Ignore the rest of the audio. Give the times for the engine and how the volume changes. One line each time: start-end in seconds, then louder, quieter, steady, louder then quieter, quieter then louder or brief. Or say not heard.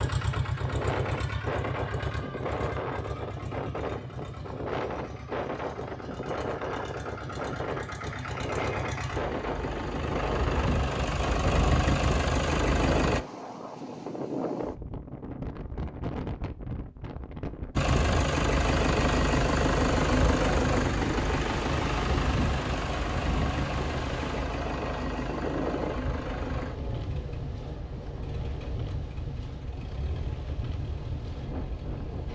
0.0-13.2 quieter then louder
17.8-32.2 quieter.